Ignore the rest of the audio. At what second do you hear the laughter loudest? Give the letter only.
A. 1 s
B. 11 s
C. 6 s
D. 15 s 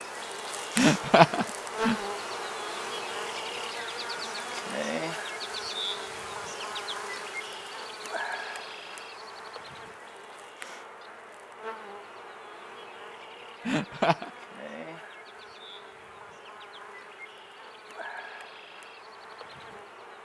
A.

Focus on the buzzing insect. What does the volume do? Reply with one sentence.
The loudness of the buzzing insect goes down.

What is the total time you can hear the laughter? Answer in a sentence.
You can hear the laughter for 2 seconds altogether.